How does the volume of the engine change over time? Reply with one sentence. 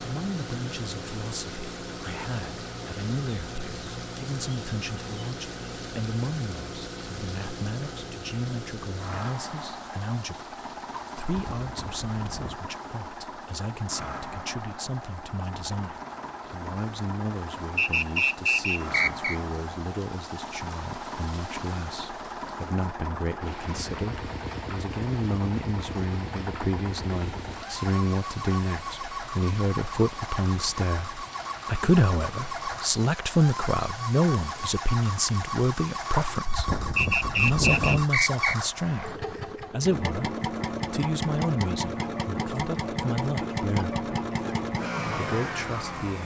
The loudness of the engine goes up.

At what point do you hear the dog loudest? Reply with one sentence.
The loudest moment of the dog is at 38 seconds.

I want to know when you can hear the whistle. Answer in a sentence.
The whistle can be heard from 17.8 to 19.4 s and from 37.0 to 38.5 s.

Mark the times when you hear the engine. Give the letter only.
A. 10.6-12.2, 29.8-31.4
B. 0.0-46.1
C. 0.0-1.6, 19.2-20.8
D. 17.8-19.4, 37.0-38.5
B.